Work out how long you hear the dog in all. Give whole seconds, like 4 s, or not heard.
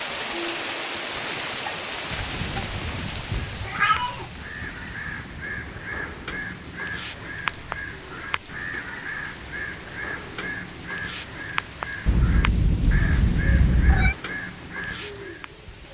not heard.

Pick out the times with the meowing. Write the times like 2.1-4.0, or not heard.
2.5-4.3, 12.1-14.2.